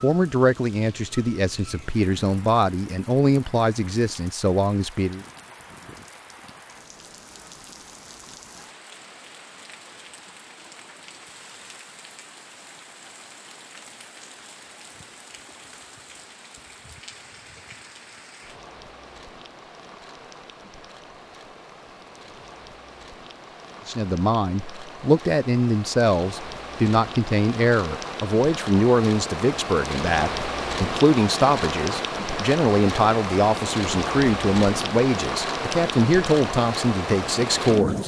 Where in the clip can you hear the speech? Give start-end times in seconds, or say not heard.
0.0-5.2, 23.9-38.0.